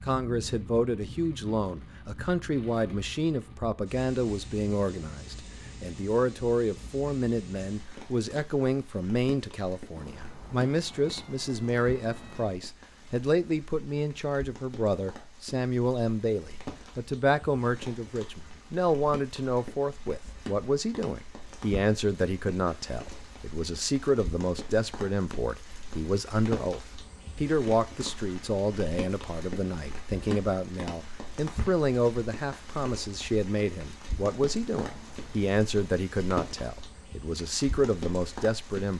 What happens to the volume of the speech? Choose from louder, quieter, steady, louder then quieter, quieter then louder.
steady.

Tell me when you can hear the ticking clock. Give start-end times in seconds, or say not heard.
not heard.